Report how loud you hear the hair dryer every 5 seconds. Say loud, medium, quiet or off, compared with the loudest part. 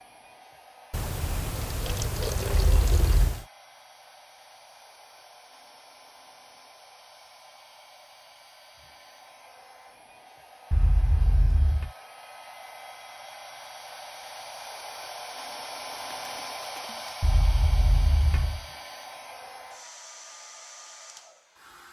quiet, quiet, medium, loud, medium.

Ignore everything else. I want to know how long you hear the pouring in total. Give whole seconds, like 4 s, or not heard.
4 s.